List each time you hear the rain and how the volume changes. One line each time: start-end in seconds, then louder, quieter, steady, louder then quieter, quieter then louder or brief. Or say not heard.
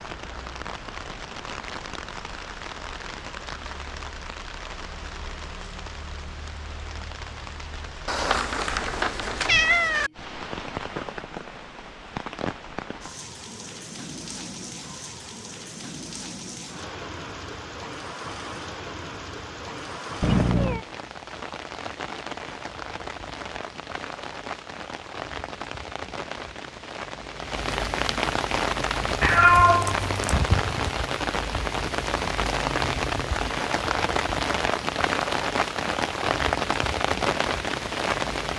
0.0-38.5 louder.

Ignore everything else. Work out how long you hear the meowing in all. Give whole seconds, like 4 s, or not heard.
4 s.